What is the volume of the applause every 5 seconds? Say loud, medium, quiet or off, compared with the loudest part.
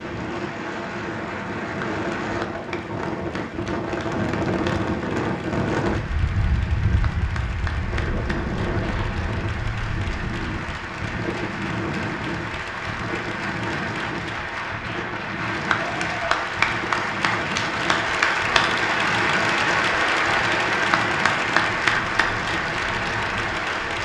quiet, quiet, medium, loud, loud.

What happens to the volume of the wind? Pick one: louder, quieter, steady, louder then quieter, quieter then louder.
quieter.